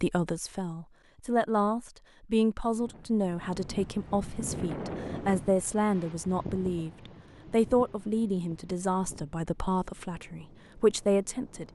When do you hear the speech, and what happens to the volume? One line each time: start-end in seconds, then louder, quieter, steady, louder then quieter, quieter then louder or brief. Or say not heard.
0.0-11.7 steady.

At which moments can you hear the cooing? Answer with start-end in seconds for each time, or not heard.
not heard.